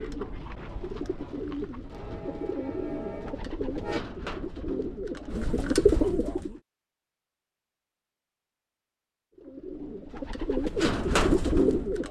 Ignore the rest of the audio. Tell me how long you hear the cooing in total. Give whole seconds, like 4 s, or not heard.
9 s.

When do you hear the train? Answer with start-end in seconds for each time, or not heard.
1.9-4.0.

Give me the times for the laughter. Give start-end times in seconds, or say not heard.
not heard.